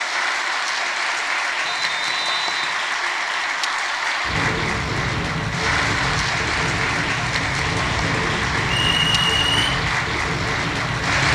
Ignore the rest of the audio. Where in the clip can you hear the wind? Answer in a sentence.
The wind can be heard from 4.2 to 11.2 s.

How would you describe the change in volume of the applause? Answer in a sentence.
The loudness of the applause stays about the same.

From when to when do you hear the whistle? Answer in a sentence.
The whistle can be heard from 1.6 to 2.8 s and from 8.8 to 9.7 s.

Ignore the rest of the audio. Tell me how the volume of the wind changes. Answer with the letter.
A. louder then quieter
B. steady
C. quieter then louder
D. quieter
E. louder
B.